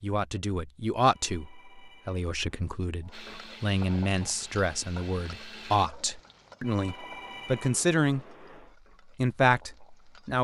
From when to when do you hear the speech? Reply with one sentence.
You can hear the speech from 0.0 to 8.2 s and from 9.2 to 10.3 s.